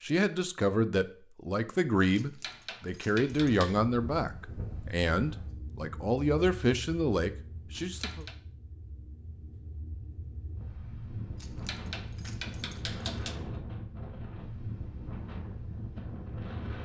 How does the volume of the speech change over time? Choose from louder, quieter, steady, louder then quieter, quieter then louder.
steady.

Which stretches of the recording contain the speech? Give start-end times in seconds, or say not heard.
0.0-8.2.